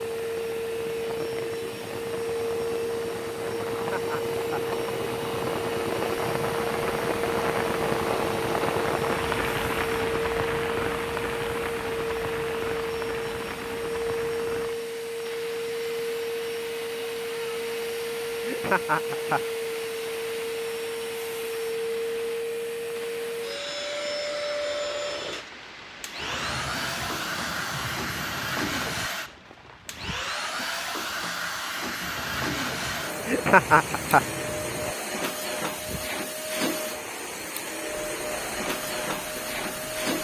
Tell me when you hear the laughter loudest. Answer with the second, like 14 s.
34 s.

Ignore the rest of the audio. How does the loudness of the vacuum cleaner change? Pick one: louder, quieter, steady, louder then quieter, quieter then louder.
steady.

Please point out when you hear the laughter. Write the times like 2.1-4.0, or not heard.
3.7-4.7, 18.4-19.4, 33.2-34.2.